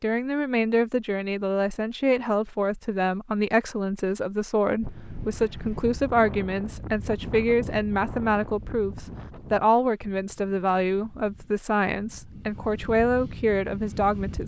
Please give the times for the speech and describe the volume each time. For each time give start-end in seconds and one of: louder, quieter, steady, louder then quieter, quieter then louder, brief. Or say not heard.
0.0-14.4 steady.